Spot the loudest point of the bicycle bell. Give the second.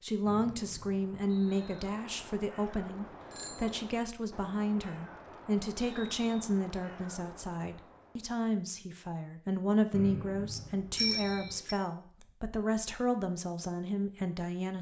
11 s.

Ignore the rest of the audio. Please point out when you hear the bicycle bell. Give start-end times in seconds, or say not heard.
2.9-3.8, 10.9-11.8.